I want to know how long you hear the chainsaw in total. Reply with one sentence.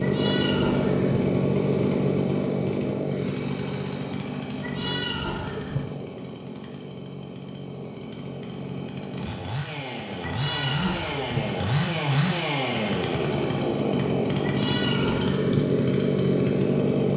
You can hear the chainsaw for 17 seconds altogether.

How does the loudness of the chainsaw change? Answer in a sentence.
The volume of the chainsaw goes down, then up.